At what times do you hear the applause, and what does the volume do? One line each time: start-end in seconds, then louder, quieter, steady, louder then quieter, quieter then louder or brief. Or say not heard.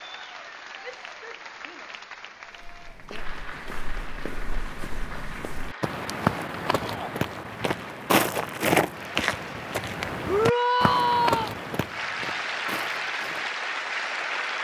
0.0-14.6 louder.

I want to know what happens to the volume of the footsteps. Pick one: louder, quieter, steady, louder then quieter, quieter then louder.
louder then quieter.